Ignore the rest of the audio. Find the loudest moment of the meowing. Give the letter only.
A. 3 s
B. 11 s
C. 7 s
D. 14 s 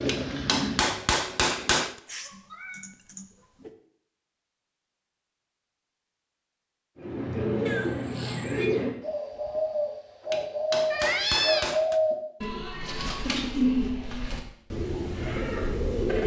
B.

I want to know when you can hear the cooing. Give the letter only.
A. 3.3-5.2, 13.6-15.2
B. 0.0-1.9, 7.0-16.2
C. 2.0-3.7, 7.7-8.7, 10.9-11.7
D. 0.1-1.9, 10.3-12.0
B.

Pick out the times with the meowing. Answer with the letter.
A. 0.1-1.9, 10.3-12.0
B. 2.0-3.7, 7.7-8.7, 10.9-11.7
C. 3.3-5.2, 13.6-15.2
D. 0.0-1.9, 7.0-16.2
B.